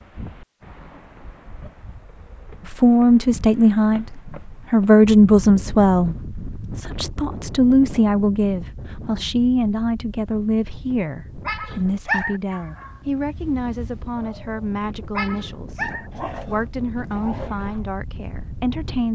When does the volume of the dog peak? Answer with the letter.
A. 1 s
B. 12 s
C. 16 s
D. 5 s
B.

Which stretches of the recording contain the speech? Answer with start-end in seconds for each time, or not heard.
2.6-19.1.